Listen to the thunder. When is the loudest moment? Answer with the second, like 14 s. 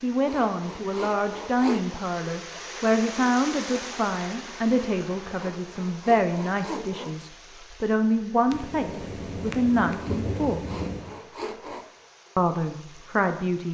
10 s.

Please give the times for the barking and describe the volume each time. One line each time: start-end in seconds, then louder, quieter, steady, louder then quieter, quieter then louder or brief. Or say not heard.
not heard.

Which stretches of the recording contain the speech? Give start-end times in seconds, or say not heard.
0.0-10.6, 12.3-13.6.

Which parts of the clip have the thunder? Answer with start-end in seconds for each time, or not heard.
8.5-11.2.